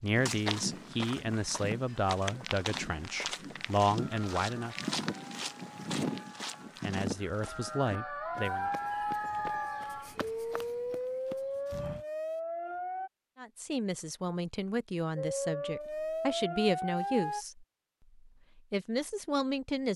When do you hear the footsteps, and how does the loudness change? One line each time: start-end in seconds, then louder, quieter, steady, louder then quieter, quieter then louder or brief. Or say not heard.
0.1-12.1 quieter.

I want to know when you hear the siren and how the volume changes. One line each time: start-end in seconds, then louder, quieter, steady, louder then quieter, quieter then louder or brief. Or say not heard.
4.0-13.1 louder
15.2-17.4 brief.